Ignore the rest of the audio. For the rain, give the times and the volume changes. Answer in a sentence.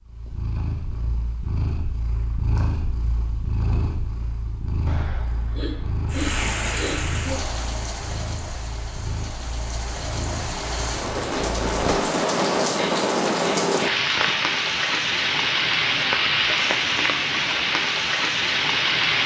You can hear the rain from 6.0 to 19.2 s, getting louder.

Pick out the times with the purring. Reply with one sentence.
The purring can be heard from 0.0 to 11.9 s.